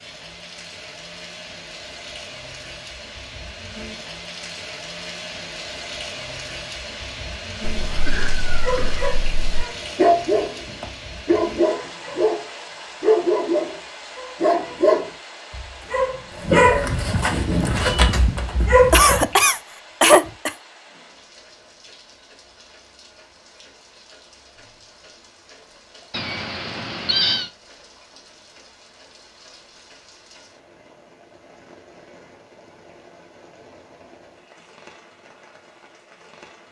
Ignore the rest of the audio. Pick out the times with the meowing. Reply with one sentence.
You can hear the meowing from 7.6 to 9.7 s, from 17.7 to 19.2 s and from 26.1 to 27.5 s.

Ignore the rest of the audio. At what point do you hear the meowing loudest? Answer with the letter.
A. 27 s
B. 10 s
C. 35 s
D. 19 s
A.